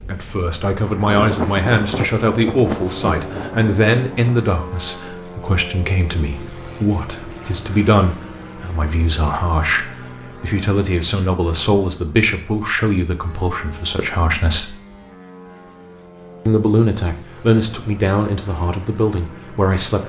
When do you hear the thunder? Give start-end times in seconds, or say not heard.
0.8-4.4.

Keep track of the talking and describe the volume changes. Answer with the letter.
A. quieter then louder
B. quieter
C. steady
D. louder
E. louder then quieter
C.